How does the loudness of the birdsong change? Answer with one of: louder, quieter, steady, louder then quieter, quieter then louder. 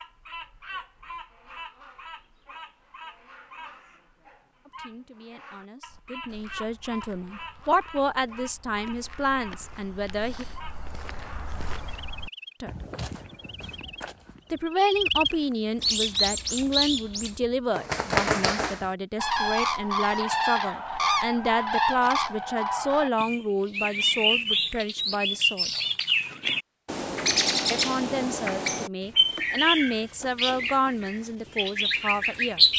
louder.